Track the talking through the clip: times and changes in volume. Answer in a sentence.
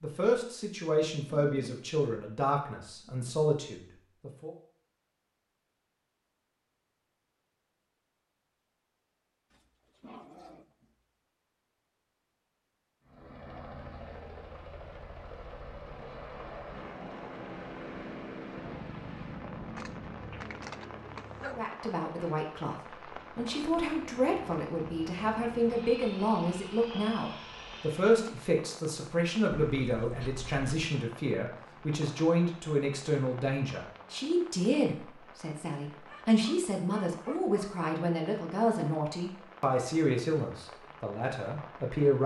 You can hear the talking from 0.0 to 4.5 s, getting quieter then louder; and from 21.4 to 42.2 s, at a steady volume.